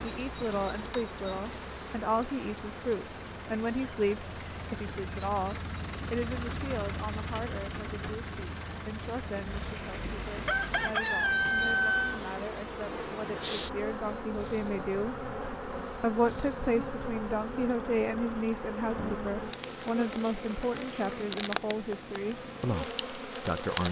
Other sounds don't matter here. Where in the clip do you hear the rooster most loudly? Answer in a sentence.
The volume of the rooster peaks at 12 seconds.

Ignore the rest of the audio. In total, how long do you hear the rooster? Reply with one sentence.
You can hear the rooster for 3 seconds altogether.